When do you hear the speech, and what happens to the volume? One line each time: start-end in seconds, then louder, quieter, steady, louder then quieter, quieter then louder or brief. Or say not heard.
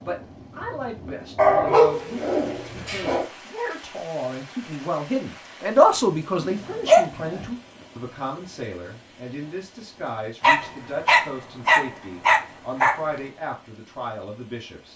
0.0-14.9 louder then quieter.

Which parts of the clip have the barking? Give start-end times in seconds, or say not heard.
1.4-3.2, 6.4-7.5, 10.4-13.0.